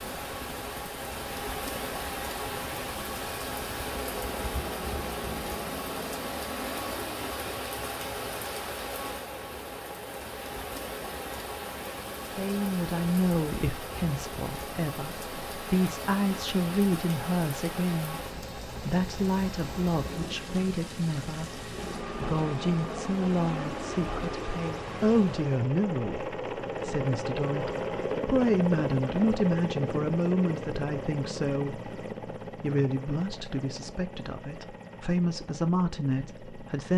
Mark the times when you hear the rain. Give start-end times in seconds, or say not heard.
0.0-25.7.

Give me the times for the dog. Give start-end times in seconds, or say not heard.
not heard.